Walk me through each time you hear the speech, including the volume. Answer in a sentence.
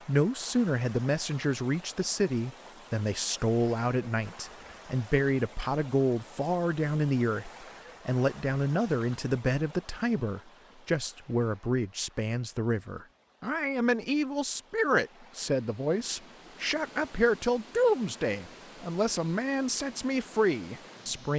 You can hear the speech from 0.1 to 21.3 s, at a steady volume.